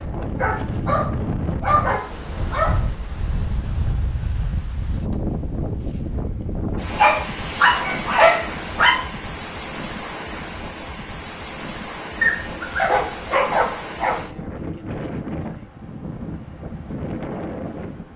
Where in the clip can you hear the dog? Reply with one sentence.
You can hear the dog from 0.2 to 2.8 s, from 7.0 to 8.9 s and from 12.2 to 14.2 s.